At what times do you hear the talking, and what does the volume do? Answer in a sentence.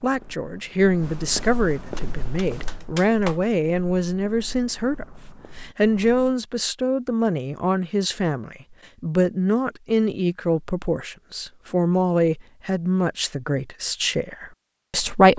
The talking can be heard from 0.0 to 15.3 s, at a steady volume.